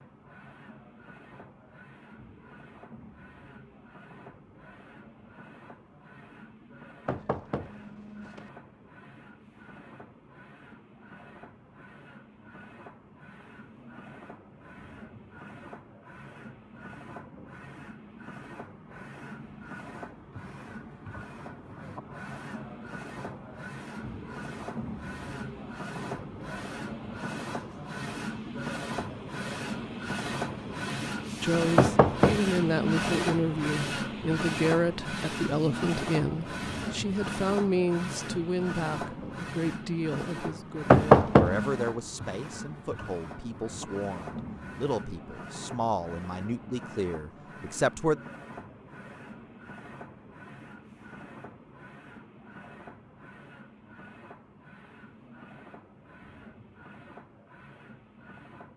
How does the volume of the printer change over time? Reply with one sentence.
The volume of the printer goes up, then down.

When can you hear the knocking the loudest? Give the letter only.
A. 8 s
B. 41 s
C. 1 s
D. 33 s
B.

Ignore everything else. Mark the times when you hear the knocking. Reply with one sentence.
You can hear the knocking from 7.0 to 8.5 s, from 31.8 to 33.2 s and from 40.9 to 41.9 s.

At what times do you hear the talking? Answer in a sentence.
The talking can be heard from 31.4 to 48.2 s.